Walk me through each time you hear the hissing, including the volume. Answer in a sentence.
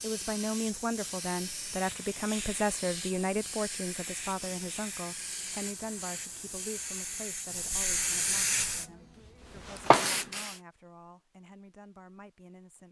You can hear the hissing from 0.0 to 10.6 s, getting louder.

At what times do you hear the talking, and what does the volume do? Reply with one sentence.
You can hear the talking from 0.0 to 12.8 s, getting quieter.